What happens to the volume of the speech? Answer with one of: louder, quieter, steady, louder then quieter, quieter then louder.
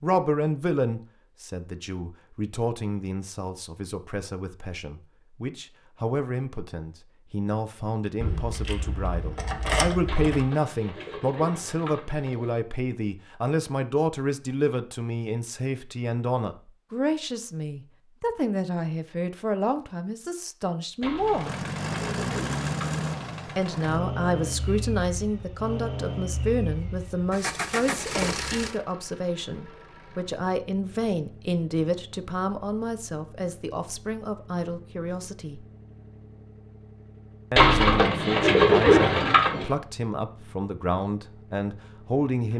steady.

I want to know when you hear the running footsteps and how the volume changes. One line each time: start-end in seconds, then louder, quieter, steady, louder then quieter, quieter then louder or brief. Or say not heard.
not heard.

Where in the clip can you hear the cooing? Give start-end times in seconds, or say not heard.
10.1-12.6, 21.0-23.1, 37.5-39.7.